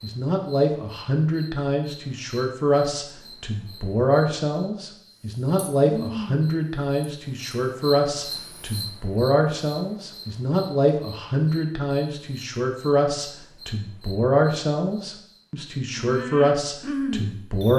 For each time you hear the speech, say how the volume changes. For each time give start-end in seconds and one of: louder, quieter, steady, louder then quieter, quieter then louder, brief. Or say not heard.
0.0-17.7 steady.